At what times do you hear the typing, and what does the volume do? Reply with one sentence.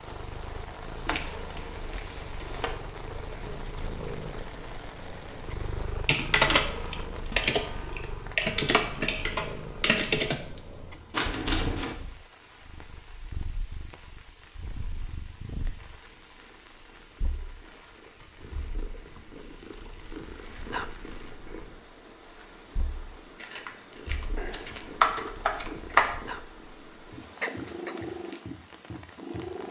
You can hear the typing from 6.0 to 10.3 s, at a steady volume; and briefly from 24.4 to 26.1 s.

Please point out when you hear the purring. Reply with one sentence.
You can hear the purring from 0.0 to 29.6 s.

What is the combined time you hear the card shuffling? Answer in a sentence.
You can hear the card shuffling for 5 seconds altogether.